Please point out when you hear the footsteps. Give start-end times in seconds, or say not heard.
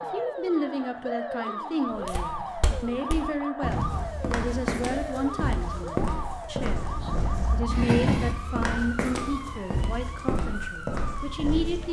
1.9-11.8.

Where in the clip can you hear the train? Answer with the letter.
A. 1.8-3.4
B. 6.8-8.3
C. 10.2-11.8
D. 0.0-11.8
B.